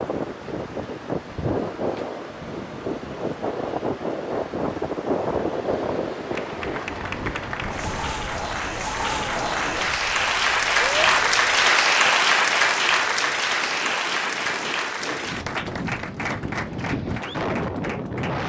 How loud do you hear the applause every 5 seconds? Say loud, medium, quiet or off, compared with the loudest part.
off, medium, loud, quiet.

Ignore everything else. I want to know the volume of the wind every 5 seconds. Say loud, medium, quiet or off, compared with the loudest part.
loud, loud, quiet, loud.